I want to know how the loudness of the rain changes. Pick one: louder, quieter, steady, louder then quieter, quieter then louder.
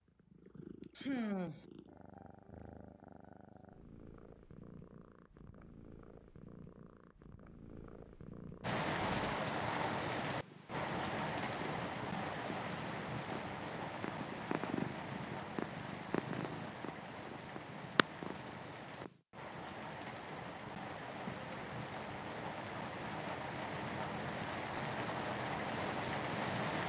quieter then louder.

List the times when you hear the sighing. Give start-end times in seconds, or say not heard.
0.9-1.6, 21.2-21.9.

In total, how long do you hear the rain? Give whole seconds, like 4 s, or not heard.
18 s.